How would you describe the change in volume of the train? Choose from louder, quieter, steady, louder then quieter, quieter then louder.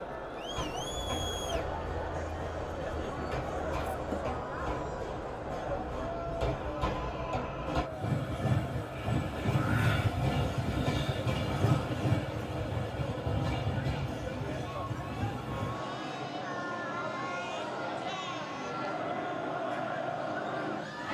louder then quieter.